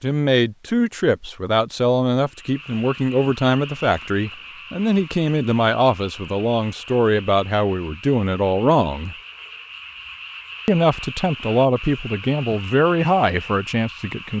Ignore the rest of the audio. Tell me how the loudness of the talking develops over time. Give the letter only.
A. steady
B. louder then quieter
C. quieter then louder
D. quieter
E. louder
A.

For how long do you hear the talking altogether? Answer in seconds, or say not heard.
13 s.